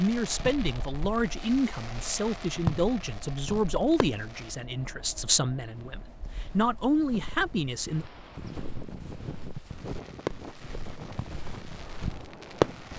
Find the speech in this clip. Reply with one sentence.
You can hear the speech from 0.0 to 8.1 s.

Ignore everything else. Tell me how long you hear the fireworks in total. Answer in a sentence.
You can hear the fireworks for 8 seconds altogether.